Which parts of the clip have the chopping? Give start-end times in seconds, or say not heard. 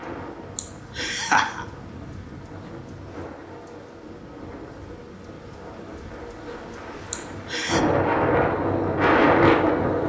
not heard.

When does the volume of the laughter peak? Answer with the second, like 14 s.
1 s.